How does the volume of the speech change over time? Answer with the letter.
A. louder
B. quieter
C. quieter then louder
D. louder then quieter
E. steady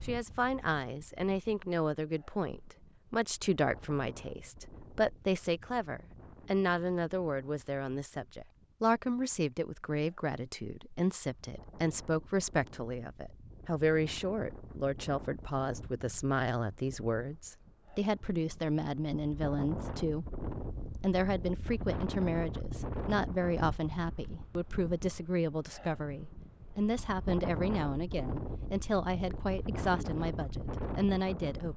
E.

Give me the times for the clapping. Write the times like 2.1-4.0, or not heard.
not heard.